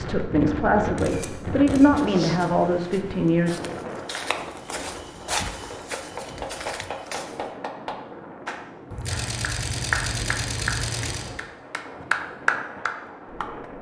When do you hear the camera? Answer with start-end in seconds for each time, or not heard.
0.9-1.9, 8.9-11.3.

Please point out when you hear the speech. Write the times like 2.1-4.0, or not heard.
0.0-3.6.